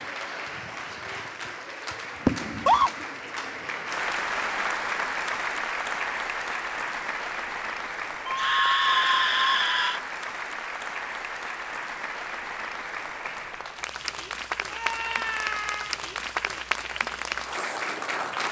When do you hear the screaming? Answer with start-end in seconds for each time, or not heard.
2.4-2.9, 8.2-10.0, 14.7-15.9.